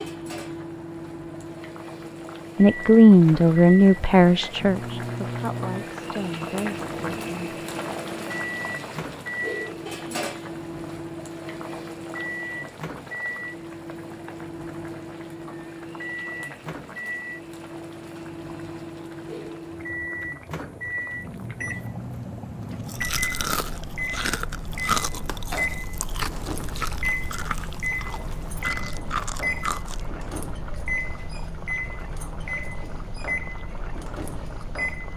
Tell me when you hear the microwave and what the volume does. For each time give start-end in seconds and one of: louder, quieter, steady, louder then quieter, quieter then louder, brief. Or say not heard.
0.0-35.1 steady.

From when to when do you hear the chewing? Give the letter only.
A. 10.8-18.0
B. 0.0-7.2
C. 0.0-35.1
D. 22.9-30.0
D.